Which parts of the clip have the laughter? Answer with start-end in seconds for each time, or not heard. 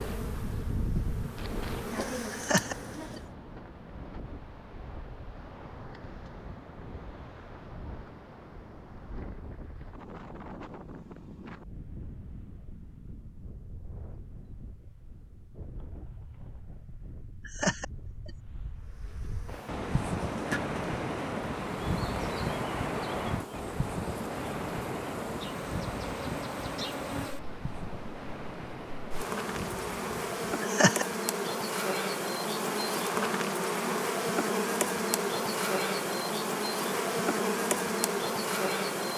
2.3-3.2, 17.4-18.3, 30.6-31.5.